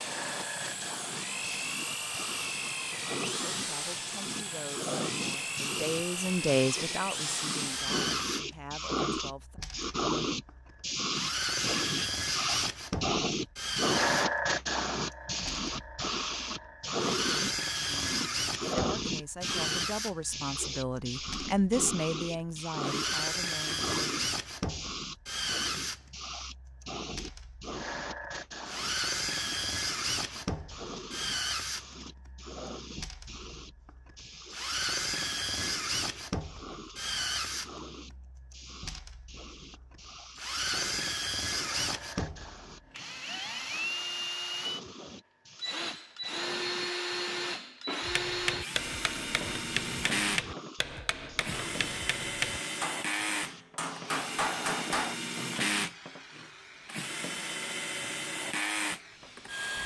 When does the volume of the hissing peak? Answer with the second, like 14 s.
14 s.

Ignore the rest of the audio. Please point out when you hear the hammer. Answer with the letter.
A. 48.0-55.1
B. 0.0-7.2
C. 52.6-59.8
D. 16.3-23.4
A.